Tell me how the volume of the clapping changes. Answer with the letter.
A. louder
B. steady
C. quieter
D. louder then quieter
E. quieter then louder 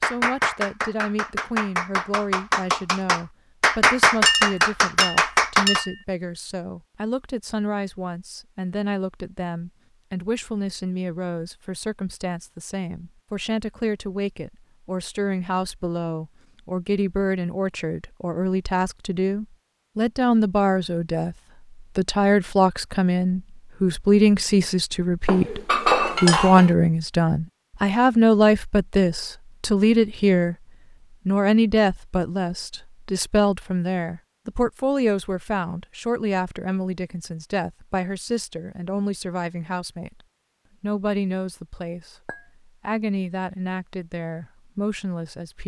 A.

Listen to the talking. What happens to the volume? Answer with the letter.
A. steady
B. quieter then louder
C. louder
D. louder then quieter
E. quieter
D.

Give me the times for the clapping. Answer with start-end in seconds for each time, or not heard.
0.0-5.8.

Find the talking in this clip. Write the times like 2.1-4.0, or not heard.
0.0-30.6, 31.2-40.2, 40.8-45.6.